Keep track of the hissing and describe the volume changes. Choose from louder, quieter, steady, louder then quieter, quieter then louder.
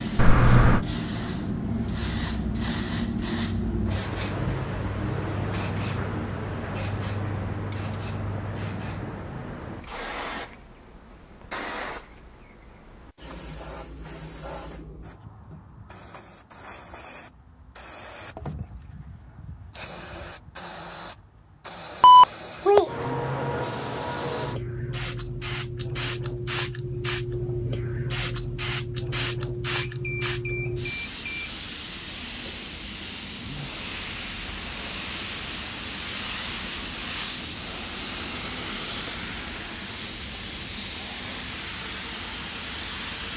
quieter then louder.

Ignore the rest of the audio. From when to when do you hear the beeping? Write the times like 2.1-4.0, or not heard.
0.1-0.8, 22.0-22.9, 29.7-31.5.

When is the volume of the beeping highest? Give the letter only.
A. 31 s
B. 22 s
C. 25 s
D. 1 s
B.